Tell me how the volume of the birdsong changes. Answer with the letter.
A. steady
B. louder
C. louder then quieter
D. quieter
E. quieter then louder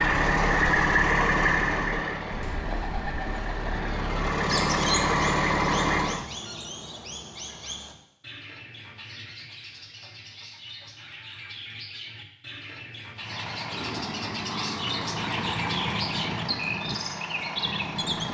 E.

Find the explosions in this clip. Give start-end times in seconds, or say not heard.
not heard.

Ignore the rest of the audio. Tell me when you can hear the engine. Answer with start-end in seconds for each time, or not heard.
0.0-6.2, 13.2-18.2.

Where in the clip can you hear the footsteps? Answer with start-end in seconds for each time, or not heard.
not heard.